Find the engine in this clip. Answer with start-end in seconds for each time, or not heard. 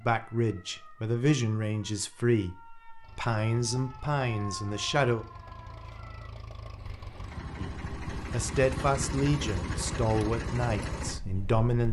3.0-11.7.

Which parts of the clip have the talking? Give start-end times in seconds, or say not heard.
0.0-5.2, 7.5-11.8.